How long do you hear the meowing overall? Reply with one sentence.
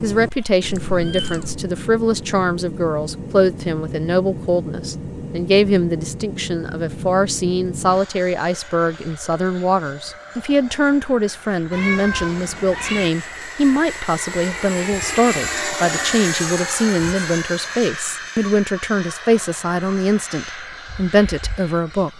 You can hear the meowing for 3 seconds altogether.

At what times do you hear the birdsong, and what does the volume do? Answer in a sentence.
You can't hear the birdsong here.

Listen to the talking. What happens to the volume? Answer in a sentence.
The volume of the talking stays about the same.